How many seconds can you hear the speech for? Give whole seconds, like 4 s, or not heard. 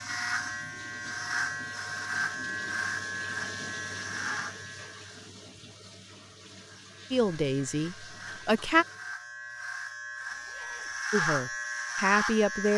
3 s.